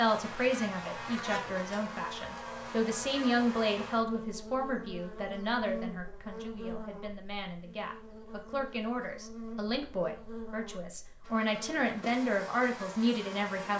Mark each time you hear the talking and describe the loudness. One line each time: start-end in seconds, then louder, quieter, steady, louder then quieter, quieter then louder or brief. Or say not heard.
0.0-13.7 quieter then louder.